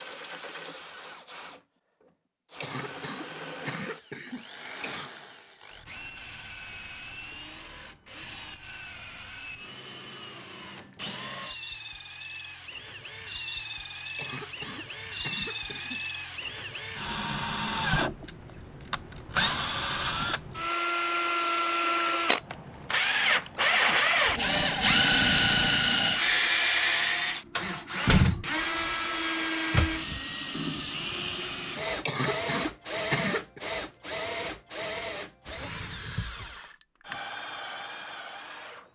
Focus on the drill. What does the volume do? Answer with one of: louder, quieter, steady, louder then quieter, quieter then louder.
louder then quieter.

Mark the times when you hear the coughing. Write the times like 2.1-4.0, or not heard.
2.6-5.1, 14.2-16.0, 32.0-33.6.